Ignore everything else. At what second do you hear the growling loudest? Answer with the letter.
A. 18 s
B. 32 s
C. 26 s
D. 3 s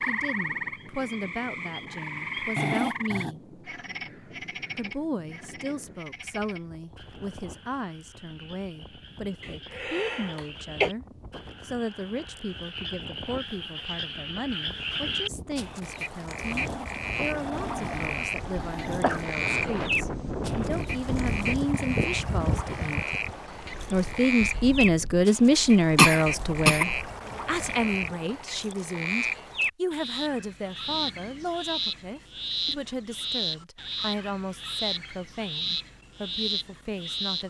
D.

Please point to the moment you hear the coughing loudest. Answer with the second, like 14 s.
26 s.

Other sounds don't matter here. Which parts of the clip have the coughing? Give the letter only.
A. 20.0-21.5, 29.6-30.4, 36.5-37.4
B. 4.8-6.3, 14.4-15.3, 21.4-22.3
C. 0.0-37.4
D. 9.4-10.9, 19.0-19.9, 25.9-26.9
D.